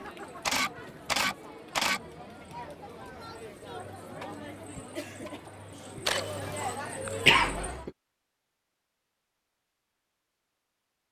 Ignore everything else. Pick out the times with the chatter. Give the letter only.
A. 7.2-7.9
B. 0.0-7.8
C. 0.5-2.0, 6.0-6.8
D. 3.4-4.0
B.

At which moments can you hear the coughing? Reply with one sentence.
The coughing can be heard from 7.2 to 7.9 s.